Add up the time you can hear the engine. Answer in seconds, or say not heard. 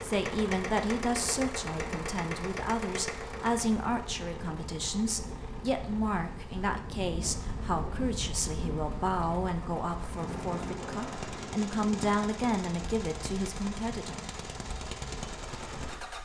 16 s.